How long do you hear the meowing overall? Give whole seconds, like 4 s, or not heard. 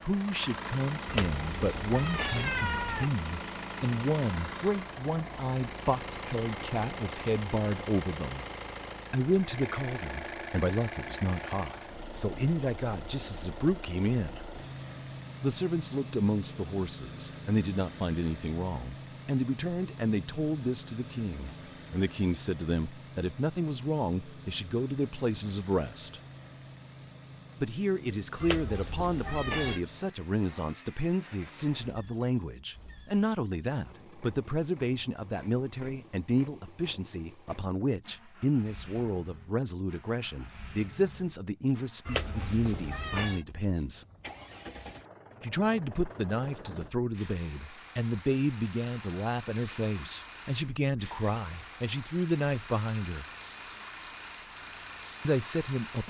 5 s.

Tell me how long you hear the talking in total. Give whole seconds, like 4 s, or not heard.
50 s.